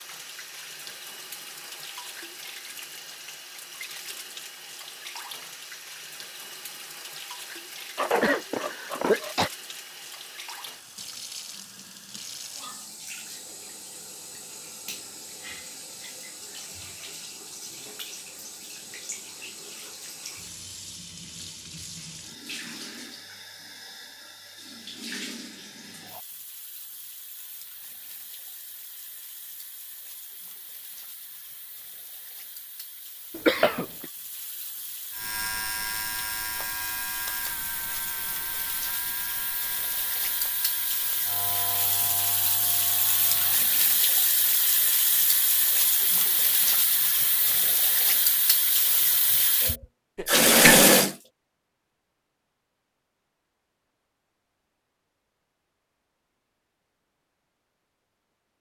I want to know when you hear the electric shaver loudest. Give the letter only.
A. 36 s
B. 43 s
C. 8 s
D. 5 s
A.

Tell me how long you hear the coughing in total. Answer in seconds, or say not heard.
3 s.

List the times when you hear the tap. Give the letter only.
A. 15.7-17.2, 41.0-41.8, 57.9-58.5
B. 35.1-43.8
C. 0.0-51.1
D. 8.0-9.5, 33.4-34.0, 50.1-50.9
C.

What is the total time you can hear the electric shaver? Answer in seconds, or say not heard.
9 s.